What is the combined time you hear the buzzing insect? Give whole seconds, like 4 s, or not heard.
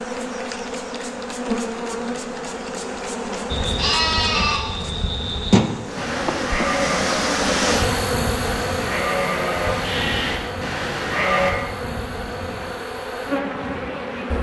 14 s.